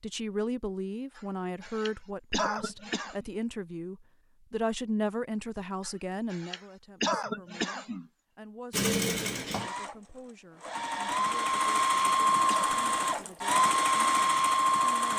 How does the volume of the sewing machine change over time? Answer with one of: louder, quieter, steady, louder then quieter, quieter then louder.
louder.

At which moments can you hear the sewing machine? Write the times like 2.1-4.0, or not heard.
8.7-15.1.